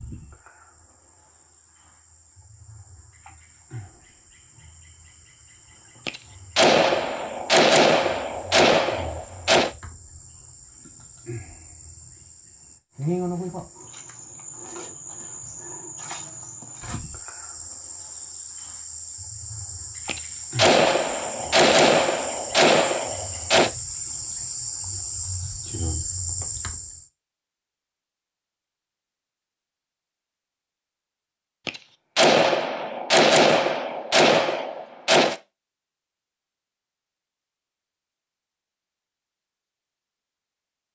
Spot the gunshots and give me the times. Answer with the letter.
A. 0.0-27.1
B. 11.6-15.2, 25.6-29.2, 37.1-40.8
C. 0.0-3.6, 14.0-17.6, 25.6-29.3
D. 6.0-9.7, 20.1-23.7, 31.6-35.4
D.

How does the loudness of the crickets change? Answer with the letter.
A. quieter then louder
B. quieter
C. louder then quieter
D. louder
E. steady
D.